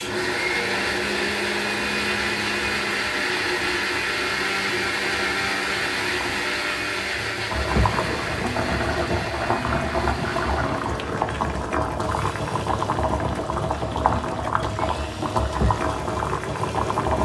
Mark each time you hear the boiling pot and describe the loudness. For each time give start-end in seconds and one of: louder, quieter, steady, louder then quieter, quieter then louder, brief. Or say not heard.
0.0-17.1 louder.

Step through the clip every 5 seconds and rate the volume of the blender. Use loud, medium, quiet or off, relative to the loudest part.
loud, loud, quiet, quiet.